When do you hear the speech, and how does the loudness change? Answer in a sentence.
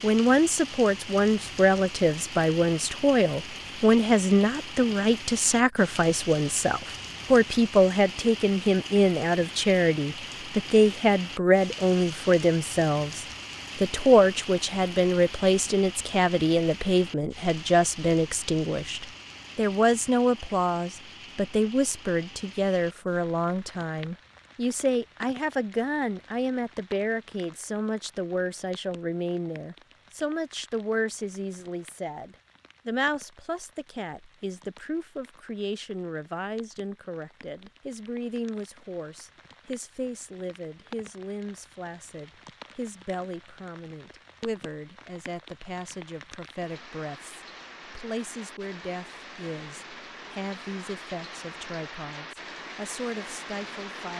You can hear the speech from 0.0 to 54.1 s, getting quieter.